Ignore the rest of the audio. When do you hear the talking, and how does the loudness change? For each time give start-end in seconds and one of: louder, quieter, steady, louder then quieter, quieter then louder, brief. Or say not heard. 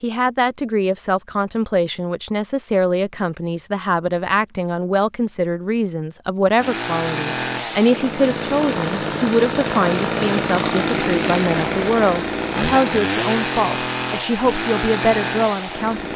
0.0-16.1 steady.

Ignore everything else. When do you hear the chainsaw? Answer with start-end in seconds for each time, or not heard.
6.5-16.1.